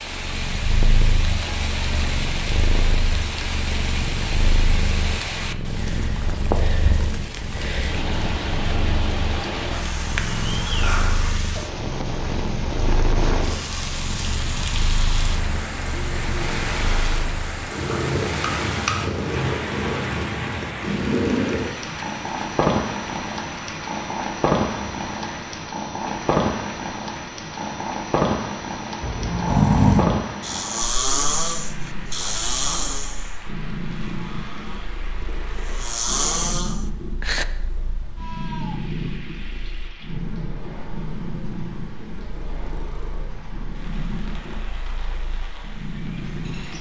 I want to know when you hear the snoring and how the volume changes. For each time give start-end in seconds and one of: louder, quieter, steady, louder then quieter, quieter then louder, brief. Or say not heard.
29.0-37.5 quieter then louder.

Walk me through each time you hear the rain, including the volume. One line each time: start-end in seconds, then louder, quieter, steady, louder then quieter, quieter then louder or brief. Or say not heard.
0.0-46.7 quieter.